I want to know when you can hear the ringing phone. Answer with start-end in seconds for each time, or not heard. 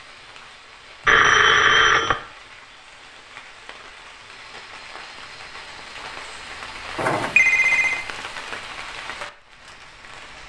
1.1-2.1, 7.0-8.1.